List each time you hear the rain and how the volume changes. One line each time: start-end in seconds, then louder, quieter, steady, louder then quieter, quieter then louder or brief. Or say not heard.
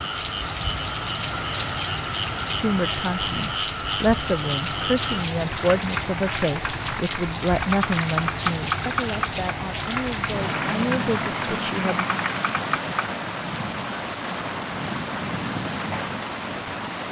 0.0-17.0 steady.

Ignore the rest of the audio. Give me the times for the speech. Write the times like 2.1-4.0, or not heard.
2.6-12.1.